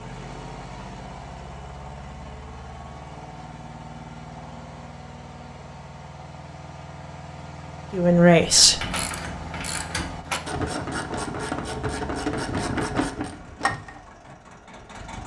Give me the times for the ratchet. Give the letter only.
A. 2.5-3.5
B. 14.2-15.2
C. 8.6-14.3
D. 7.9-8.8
C.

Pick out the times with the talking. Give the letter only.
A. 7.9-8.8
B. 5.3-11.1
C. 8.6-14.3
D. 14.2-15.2
A.